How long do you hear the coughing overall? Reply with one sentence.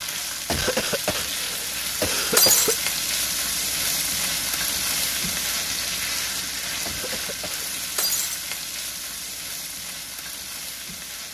The coughing can be heard for 3 seconds in total.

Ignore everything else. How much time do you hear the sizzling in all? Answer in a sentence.
You can hear the sizzling for 11 seconds altogether.